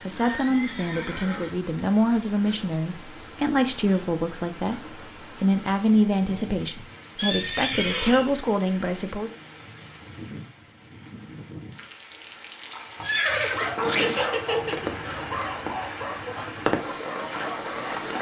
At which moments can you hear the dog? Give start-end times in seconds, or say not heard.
13.3-18.1.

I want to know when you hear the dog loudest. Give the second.
14 s.